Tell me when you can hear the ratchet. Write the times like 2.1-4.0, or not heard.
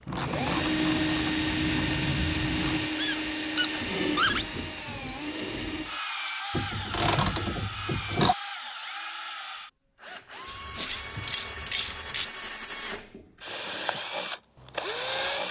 0.1-2.9, 6.5-8.3, 10.4-12.2.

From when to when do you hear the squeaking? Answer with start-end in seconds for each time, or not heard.
2.5-4.5.